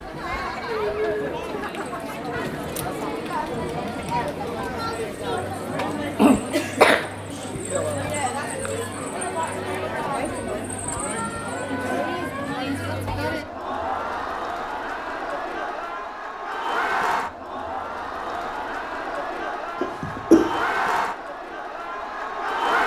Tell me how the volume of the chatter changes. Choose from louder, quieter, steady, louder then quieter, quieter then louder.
steady.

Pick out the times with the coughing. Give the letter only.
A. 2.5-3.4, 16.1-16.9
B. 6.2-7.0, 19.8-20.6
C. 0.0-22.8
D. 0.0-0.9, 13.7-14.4
B.